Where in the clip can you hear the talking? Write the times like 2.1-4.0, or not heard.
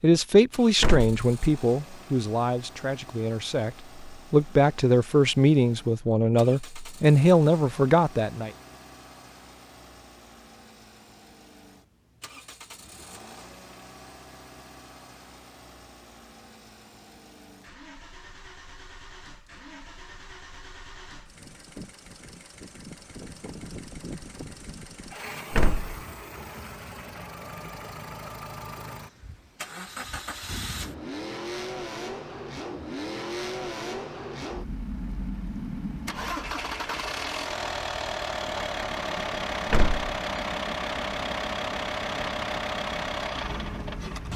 0.0-8.5.